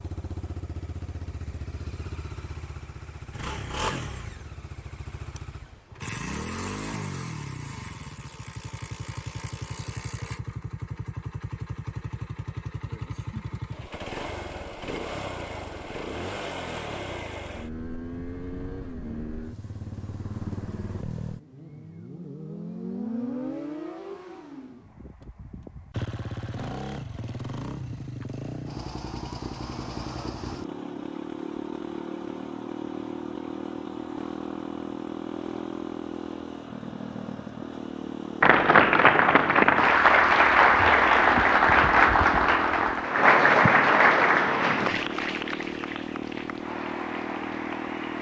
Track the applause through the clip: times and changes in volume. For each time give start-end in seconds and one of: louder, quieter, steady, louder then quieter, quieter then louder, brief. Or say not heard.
38.4-48.1 quieter.